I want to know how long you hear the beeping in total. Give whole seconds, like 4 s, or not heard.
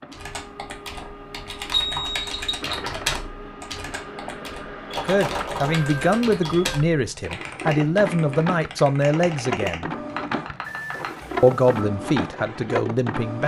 4 s.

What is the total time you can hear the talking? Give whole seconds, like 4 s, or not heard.
7 s.